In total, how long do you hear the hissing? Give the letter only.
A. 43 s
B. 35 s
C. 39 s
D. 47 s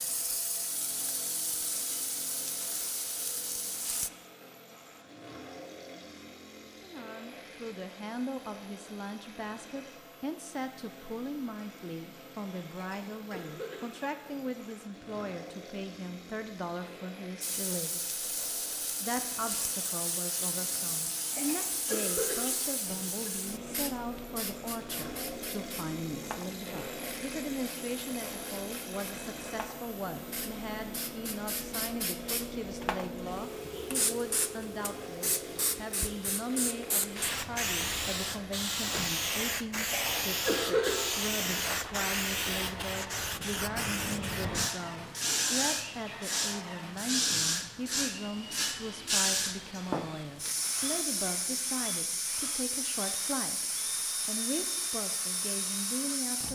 A.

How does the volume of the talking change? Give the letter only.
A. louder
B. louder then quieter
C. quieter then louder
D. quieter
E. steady
E.